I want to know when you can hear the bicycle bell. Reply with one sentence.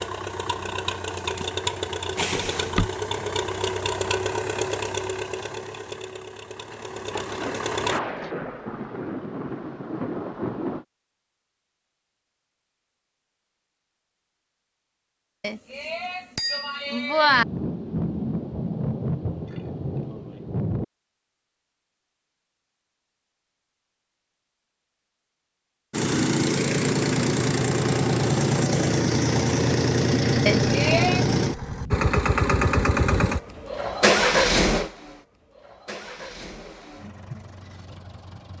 You can hear the bicycle bell from 2.1 to 2.9 s, from 15.4 to 17.4 s and from 30.4 to 31.2 s.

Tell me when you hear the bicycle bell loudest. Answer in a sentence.
The loudest moment of the bicycle bell is at 17 seconds.